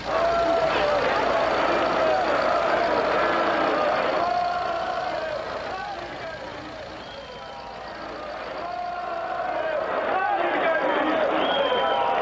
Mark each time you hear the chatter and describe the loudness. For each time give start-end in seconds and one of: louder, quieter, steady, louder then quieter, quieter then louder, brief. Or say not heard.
0.0-12.1 quieter then louder.